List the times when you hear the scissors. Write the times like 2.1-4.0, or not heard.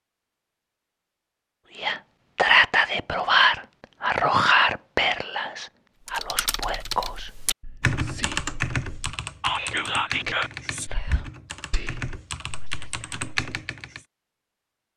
not heard.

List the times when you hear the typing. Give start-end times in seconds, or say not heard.
6.0-14.0.